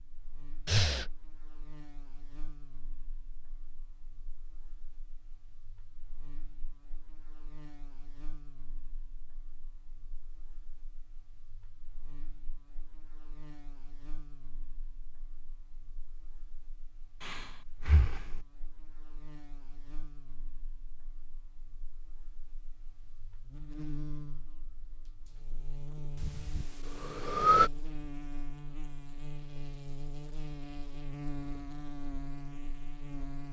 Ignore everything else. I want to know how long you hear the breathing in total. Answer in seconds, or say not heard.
3 s.